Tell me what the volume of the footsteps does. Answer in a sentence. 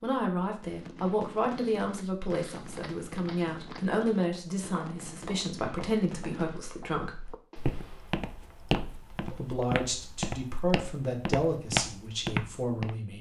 The volume of the footsteps goes up.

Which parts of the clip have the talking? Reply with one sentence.
The talking can be heard from 0.0 to 7.3 s and from 9.2 to 13.1 s.